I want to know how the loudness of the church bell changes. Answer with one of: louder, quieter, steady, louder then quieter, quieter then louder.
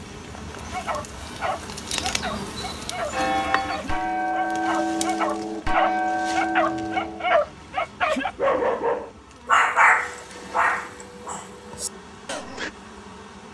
louder.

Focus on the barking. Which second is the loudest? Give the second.
10 s.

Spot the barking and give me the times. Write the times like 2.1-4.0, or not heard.
0.7-12.7.